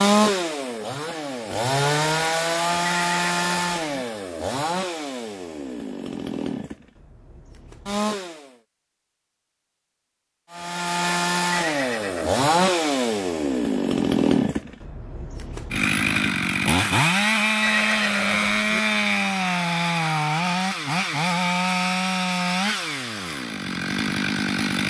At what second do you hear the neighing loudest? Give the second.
18 s.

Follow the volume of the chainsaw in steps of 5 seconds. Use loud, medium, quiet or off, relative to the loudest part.
loud, medium, loud, loud, loud.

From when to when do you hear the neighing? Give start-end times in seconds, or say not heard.
2.9-4.0, 11.5-12.3, 17.6-18.8.